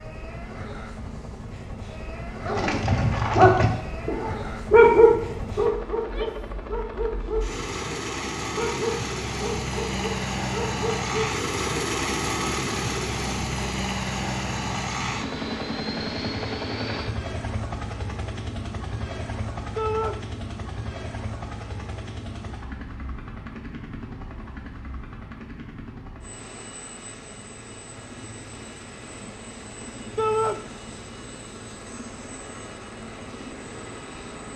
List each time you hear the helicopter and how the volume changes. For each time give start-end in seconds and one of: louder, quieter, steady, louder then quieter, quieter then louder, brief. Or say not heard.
0.0-34.5 louder then quieter.